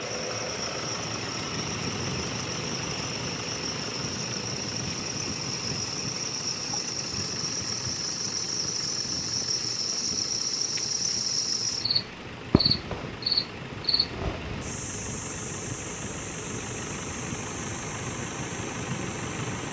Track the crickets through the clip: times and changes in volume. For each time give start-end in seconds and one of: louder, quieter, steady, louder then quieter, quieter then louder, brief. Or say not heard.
0.0-19.6 louder then quieter.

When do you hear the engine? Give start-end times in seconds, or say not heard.
0.0-19.6.